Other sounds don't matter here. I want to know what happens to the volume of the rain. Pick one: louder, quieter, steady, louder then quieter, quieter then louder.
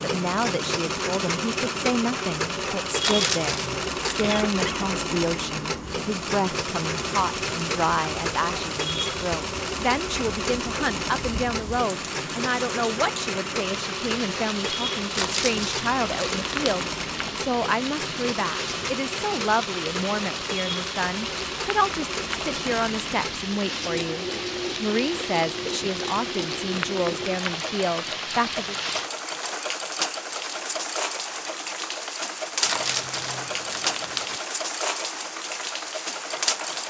louder.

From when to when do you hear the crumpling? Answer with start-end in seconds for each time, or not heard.
3.0-4.3, 15.2-16.9, 32.6-34.4.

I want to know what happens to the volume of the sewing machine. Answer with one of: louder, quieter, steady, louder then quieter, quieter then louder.
quieter.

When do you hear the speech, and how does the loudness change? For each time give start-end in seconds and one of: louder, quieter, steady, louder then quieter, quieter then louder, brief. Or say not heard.
0.0-28.8 steady.